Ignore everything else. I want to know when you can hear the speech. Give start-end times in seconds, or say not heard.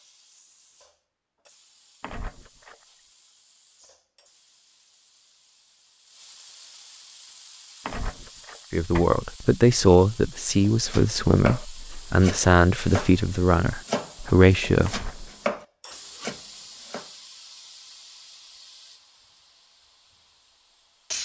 8.7-15.1.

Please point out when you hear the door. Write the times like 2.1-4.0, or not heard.
2.0-2.8, 7.8-9.1, 14.8-15.5.